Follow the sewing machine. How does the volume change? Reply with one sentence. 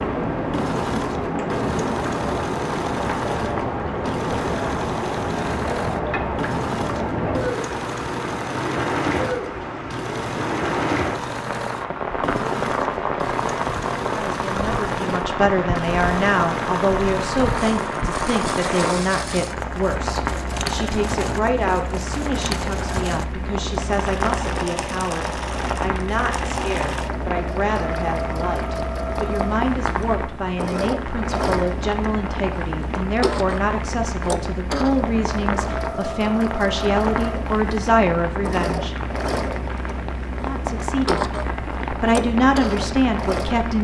The loudness of the sewing machine stays about the same.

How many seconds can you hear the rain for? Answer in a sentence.
The rain can be heard for 44 seconds in total.